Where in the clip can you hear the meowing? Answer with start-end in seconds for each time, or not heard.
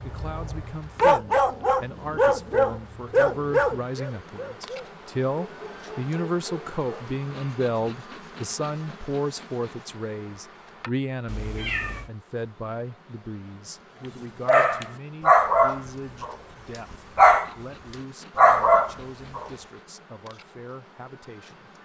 11.2-12.1.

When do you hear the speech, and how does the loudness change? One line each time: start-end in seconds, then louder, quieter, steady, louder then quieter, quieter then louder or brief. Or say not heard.
0.0-21.7 louder then quieter.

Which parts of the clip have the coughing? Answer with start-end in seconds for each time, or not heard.
not heard.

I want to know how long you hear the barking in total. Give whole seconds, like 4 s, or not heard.
11 s.